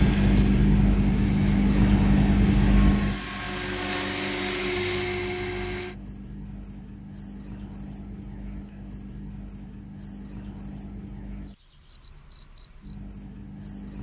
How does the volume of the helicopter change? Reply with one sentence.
The volume of the helicopter goes up.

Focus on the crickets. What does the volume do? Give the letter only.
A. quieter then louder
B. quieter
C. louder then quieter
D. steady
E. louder
B.